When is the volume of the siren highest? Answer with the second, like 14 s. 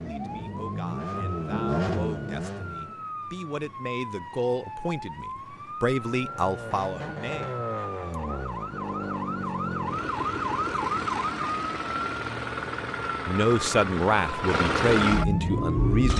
11 s.